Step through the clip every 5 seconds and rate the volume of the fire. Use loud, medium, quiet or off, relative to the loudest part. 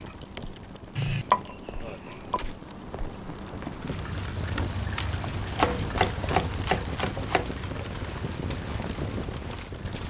medium, loud.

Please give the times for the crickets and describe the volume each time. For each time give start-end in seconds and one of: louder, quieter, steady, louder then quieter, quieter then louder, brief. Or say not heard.
0.0-10.0 louder then quieter.